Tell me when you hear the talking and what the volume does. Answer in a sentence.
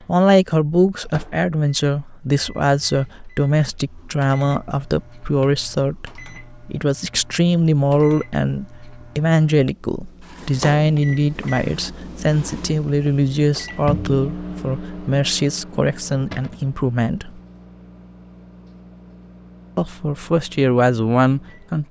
You can hear the talking from 0.1 to 17.4 s, at a steady volume; and briefly from 19.8 to 21.8 s.